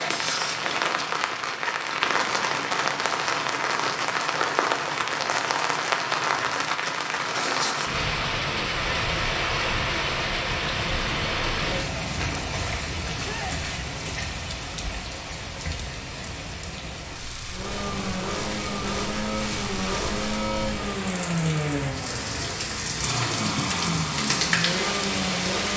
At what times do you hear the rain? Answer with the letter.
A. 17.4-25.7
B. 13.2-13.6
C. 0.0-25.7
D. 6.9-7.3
C.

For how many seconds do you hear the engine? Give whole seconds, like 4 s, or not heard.
8 s.